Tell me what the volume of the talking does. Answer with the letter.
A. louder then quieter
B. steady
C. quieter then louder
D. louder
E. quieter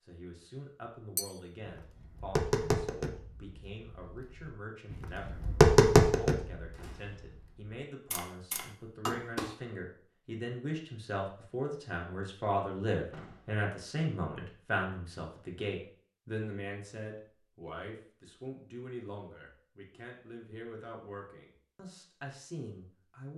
A.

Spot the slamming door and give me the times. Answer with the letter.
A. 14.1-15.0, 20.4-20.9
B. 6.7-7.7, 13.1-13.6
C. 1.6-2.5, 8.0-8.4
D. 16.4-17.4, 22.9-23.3
B.